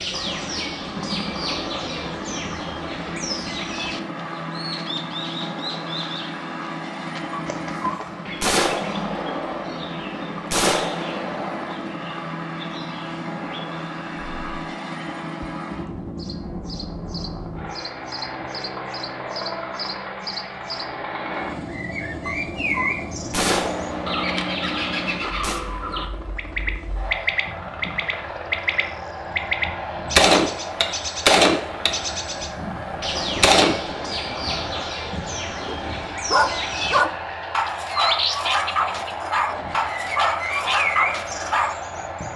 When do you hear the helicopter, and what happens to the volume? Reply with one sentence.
The helicopter can be heard from 0.0 to 42.3 s, at a steady volume.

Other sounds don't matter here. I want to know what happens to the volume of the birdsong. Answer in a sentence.
The loudness of the birdsong goes down, then up.